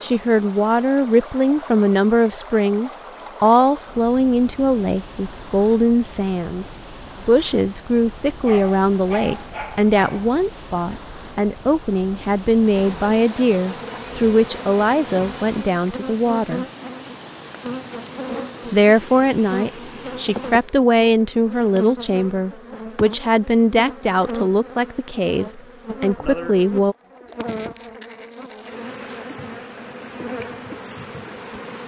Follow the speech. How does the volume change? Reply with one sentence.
The volume of the speech stays about the same.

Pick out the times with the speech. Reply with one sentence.
You can hear the speech from 0.0 to 16.6 s and from 18.7 to 26.9 s.